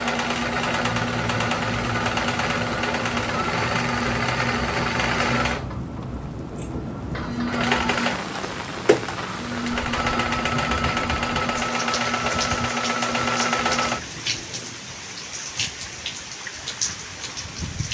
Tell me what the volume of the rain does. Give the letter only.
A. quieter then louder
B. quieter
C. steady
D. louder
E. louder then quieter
C.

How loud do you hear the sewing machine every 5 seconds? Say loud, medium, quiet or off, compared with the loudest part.
loud, loud, loud, off.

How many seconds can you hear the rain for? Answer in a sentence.
The rain can be heard for 18 seconds in total.